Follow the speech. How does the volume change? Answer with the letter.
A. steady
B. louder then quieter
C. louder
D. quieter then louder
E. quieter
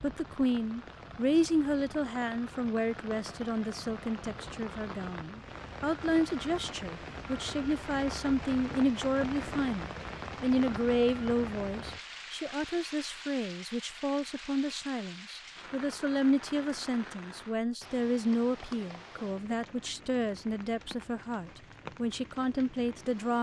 A.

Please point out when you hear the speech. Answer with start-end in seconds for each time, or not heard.
0.0-23.3.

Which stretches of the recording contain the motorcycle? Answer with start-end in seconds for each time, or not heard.
not heard.